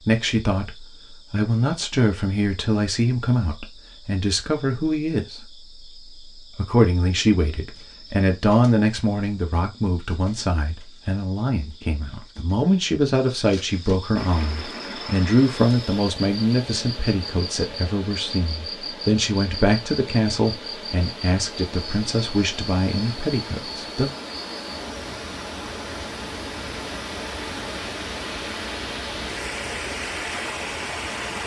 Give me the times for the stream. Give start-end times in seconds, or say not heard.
14.2-31.4.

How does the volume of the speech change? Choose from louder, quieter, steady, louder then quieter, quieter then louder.
steady.